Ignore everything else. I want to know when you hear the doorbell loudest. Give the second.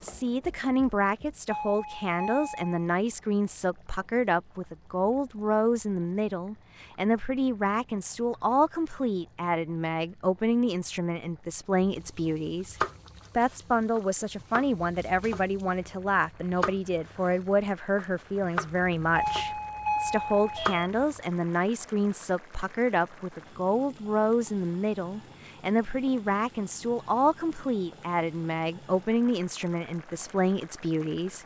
20 s.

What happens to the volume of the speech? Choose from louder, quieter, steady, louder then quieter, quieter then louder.
steady.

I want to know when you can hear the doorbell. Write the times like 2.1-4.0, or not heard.
1.4-2.9, 19.1-20.9.